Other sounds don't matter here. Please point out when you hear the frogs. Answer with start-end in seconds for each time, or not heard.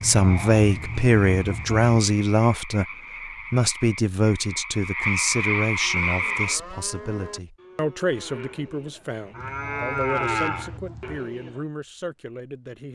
0.0-6.6.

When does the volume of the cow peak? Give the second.
10 s.